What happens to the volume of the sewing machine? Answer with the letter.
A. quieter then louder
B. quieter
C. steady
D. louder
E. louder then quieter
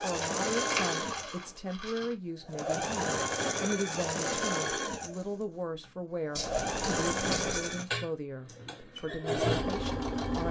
C.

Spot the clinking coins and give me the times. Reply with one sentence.
You can hear the clinking coins from 0.2 to 2.1 s and from 6.3 to 7.8 s.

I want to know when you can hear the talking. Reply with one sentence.
You can hear the talking from 0.0 to 10.4 s.